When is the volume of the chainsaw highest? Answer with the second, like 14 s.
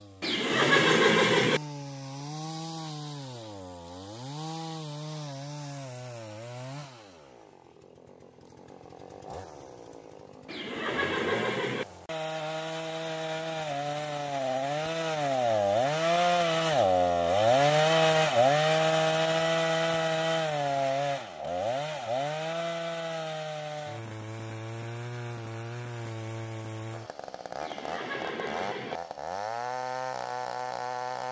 18 s.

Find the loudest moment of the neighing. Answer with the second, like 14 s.
1 s.